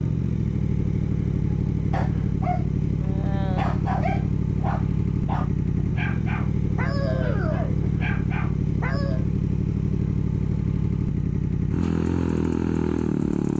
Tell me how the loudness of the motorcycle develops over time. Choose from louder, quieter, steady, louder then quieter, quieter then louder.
steady.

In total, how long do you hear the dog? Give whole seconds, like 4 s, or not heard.
8 s.